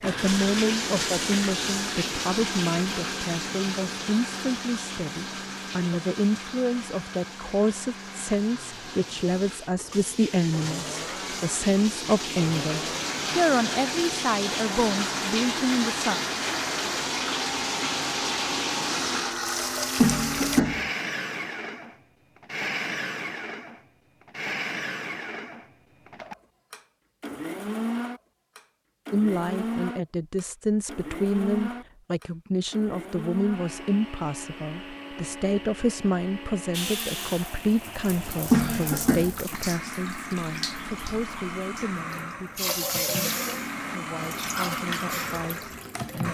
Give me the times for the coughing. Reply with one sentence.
The coughing can be heard from 19.9 to 20.9 s and from 38.5 to 39.4 s.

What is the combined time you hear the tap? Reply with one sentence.
The tap can be heard for 30 seconds in total.